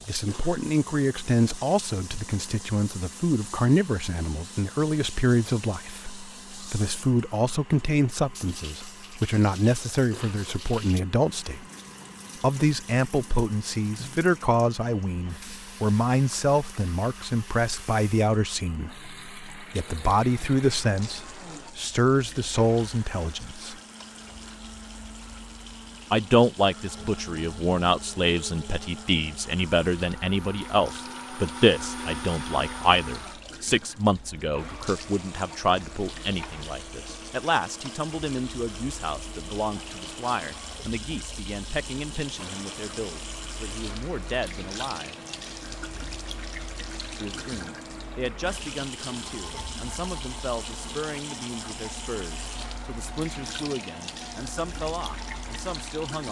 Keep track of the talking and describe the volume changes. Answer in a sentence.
The volume of the talking goes down.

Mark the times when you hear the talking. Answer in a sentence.
You can hear the talking from 0.1 to 11.7 s, from 12.4 to 23.8 s, from 26.1 to 45.1 s and from 47.1 to 56.2 s.